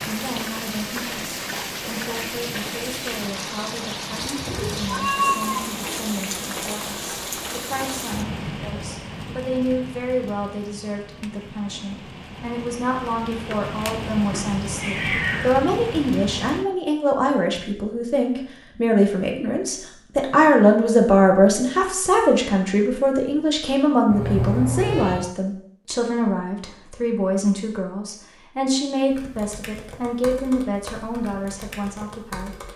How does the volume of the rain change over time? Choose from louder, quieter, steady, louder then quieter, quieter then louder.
quieter then louder.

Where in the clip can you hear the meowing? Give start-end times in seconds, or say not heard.
4.5-5.7, 14.3-15.6, 24.1-25.4.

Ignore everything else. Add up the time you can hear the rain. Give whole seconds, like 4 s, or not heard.
17 s.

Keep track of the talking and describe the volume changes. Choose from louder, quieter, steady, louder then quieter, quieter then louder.
louder then quieter.